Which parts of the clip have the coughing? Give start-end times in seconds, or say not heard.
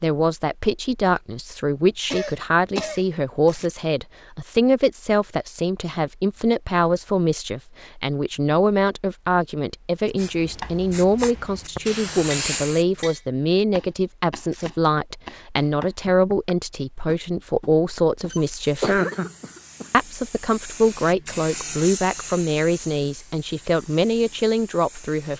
2.1-3.0, 18.3-19.9.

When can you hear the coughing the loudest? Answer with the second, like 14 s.
19 s.